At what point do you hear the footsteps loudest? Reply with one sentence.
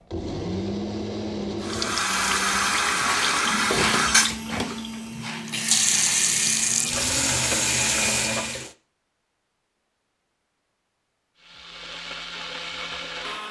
The volume of the footsteps peaks at 4 seconds.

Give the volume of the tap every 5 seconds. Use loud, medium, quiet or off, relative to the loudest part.
loud, loud, off.